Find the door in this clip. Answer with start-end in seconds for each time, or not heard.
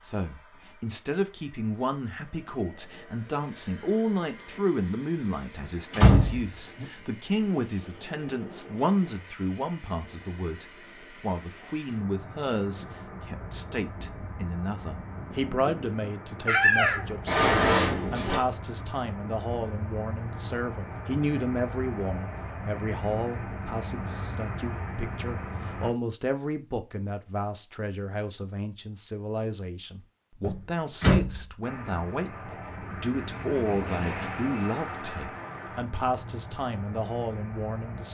5.9-6.8, 17.2-18.4, 30.4-31.4.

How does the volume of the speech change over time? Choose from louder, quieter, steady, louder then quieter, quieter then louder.
steady.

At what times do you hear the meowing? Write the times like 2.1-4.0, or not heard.
16.4-17.1.